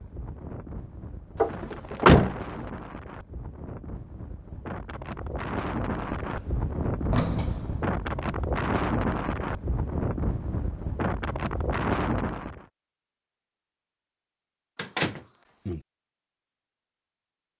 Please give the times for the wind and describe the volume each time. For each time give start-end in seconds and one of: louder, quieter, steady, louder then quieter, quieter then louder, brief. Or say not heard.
0.0-12.7 louder.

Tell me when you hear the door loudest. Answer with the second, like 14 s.
2 s.